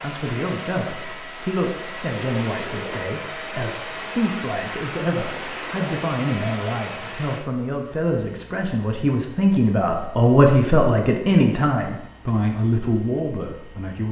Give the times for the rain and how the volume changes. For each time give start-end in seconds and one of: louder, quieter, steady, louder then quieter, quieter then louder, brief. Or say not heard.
not heard.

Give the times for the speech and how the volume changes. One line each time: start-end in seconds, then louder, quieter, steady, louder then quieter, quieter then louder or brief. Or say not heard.
0.0-14.0 louder.